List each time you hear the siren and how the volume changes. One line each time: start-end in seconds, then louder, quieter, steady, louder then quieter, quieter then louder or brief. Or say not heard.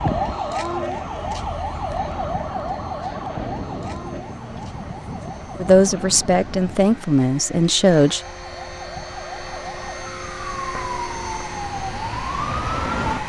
0.0-13.2 quieter then louder.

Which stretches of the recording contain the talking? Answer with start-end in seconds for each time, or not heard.
5.6-8.2.